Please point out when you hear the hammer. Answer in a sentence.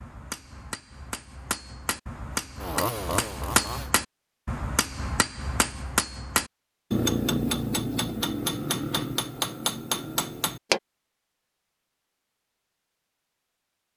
You can hear the hammer from 0.0 to 10.8 s.